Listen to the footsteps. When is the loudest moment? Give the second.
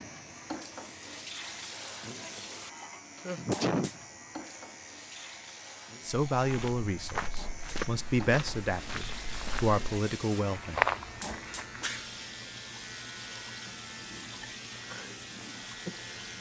11 s.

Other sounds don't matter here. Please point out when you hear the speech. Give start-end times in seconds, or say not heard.
6.0-10.8.